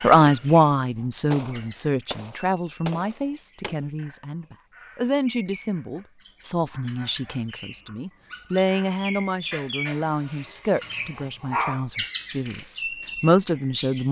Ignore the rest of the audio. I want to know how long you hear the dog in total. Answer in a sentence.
The dog can be heard for 2 seconds in total.